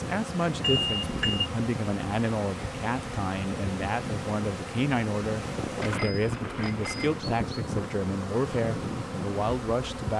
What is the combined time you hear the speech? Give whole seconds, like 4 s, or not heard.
10 s.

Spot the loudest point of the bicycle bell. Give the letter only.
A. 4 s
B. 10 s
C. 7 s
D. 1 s
D.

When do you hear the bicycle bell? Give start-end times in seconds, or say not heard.
0.6-1.4, 5.8-7.2.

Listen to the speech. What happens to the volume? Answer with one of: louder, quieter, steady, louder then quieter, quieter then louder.
steady.